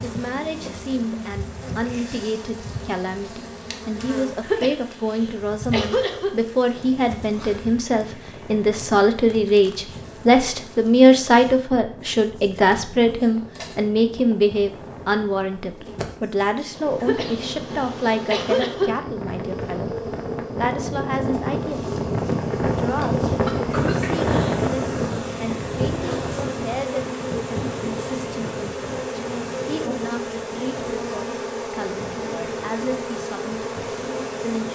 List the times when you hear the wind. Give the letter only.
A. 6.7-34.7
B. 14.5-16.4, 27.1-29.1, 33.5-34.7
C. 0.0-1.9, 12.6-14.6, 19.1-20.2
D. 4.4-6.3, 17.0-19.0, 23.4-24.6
A.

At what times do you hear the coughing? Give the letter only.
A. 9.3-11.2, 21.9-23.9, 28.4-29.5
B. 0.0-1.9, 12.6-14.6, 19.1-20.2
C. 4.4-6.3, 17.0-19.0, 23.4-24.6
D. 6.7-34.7
C.